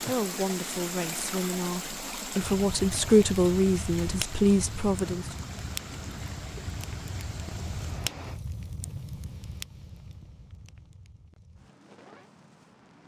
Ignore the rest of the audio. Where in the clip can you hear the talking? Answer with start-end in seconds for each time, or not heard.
0.1-5.2.